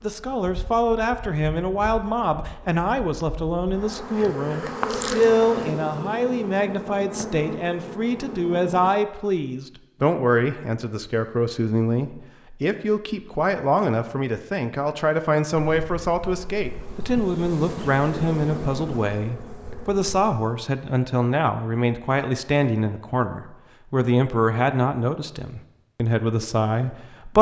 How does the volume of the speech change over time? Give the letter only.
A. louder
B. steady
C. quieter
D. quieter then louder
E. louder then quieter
B.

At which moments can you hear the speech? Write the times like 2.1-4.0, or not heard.
0.0-27.3.